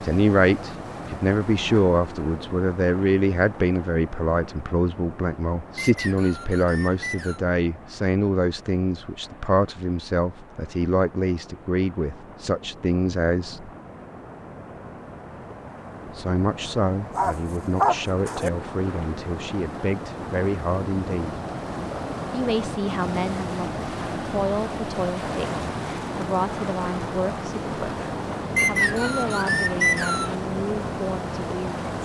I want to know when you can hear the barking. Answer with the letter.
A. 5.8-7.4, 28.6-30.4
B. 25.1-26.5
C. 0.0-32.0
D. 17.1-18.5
D.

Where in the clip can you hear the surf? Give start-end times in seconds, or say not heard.
0.0-32.0.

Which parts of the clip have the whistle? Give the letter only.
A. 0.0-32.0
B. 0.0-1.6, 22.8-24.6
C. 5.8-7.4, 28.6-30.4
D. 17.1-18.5
C.